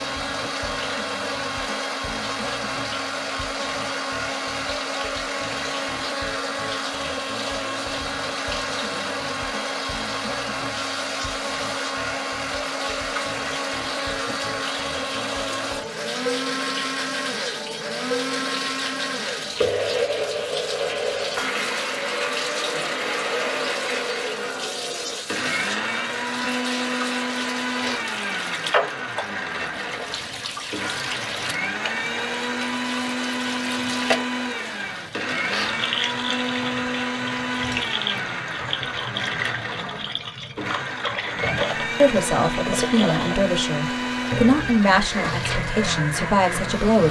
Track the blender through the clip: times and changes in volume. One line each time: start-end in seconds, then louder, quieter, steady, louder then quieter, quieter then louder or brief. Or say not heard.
0.0-47.0 steady.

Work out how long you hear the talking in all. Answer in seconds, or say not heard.
5 s.